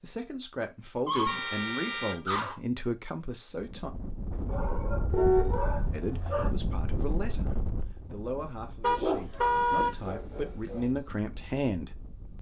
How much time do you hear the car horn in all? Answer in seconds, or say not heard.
4 s.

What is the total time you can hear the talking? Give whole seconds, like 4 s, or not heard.
10 s.